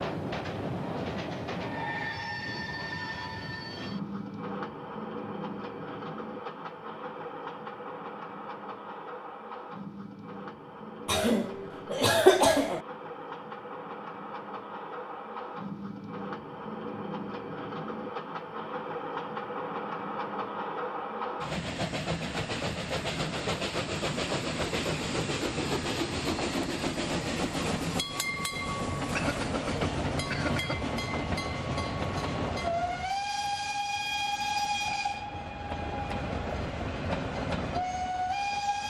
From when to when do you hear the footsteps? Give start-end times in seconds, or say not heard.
not heard.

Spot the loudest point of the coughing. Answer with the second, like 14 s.
12 s.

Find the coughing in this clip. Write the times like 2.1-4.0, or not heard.
11.1-12.8, 29.1-30.8.